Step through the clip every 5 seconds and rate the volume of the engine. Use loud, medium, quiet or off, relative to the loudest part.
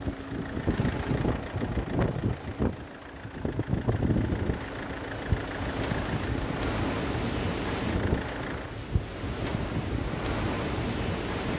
loud, loud, off.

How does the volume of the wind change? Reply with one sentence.
The loudness of the wind stays about the same.